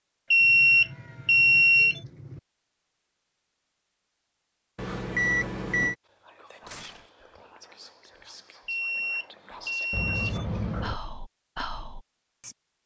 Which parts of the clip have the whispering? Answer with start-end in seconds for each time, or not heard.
6.0-12.6.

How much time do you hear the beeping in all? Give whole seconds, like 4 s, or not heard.
5 s.